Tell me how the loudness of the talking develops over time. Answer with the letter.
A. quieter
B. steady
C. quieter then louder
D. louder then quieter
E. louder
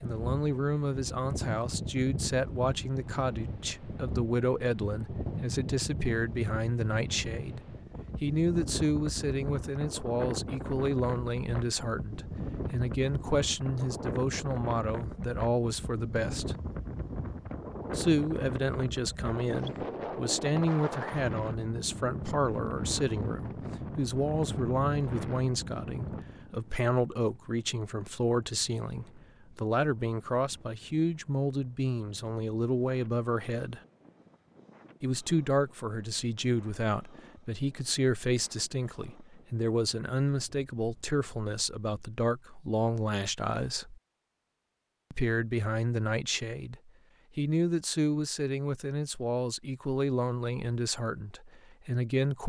B.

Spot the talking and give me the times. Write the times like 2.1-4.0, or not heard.
0.0-16.6, 17.9-33.8, 35.0-44.0, 45.1-52.4.